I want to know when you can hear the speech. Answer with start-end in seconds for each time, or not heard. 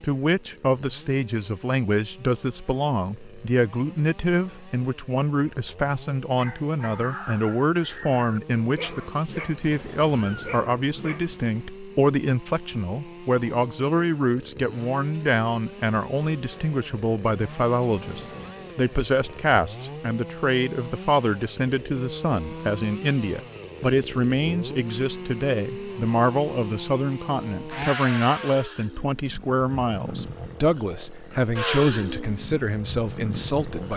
0.0-33.9.